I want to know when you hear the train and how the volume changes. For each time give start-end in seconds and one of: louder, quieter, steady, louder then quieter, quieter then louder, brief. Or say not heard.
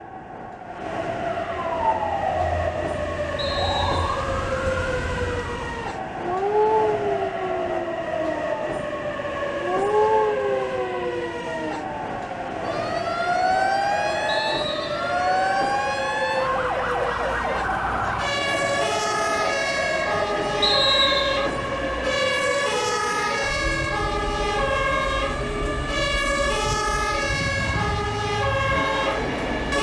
0.0-29.7 steady.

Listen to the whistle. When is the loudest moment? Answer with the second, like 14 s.
21 s.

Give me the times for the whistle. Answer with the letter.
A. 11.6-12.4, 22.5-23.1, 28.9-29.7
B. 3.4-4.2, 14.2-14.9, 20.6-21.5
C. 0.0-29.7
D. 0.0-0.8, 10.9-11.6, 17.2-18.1
B.